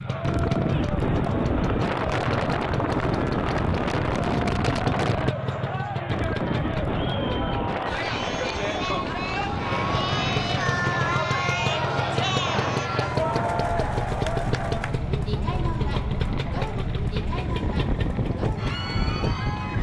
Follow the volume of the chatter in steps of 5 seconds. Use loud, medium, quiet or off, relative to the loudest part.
medium, loud, loud, medium.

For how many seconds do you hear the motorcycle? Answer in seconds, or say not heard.
18 s.